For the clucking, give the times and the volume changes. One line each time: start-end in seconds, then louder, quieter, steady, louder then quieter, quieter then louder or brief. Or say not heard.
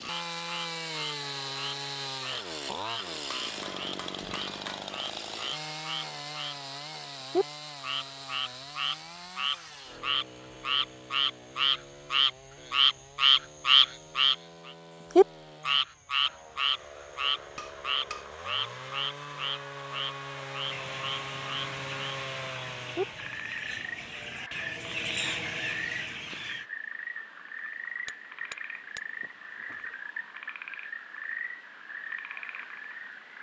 20.6-26.6 louder.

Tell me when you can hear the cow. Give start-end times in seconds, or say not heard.
not heard.